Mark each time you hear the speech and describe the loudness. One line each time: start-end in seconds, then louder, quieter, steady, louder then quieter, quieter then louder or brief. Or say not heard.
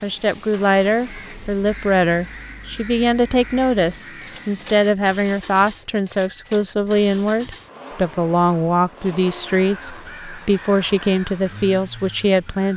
0.0-12.7 steady.